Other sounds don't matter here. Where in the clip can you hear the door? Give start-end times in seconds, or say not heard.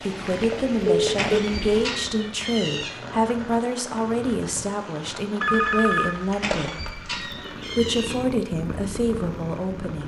1.1-2.9, 6.3-8.2.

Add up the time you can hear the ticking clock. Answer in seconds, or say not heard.
not heard.